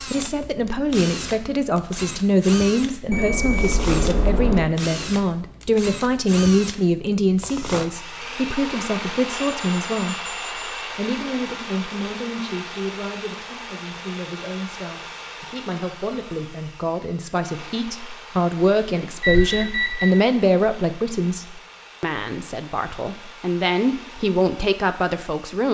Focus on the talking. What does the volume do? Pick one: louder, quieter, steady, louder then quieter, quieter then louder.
quieter then louder.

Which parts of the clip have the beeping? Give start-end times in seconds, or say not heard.
3.1-4.7, 9.3-10.9, 19.2-20.1.